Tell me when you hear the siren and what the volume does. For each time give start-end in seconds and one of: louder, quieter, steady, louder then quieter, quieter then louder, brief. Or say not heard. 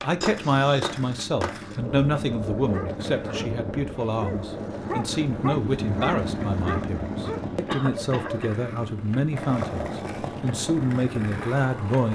not heard.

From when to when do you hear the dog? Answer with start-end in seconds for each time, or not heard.
2.5-8.4.